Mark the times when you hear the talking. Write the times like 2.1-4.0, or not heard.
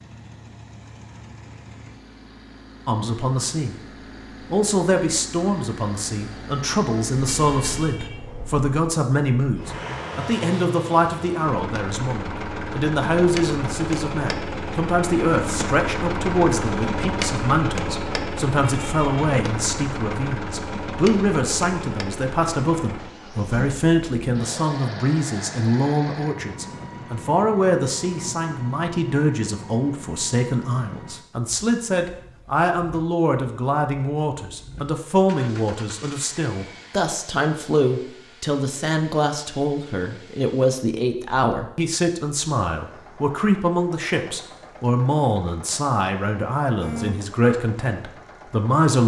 2.9-3.8, 4.5-49.0.